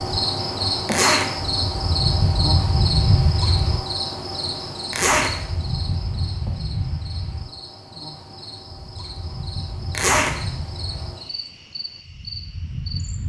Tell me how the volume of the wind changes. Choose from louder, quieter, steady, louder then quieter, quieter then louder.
quieter.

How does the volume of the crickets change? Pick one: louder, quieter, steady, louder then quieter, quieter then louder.
quieter.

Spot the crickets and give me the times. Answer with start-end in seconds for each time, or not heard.
0.0-13.2.